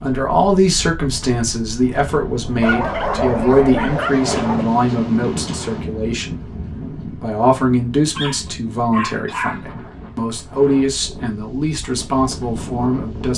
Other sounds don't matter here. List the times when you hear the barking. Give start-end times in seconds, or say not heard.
2.6-4.7, 8.2-9.7.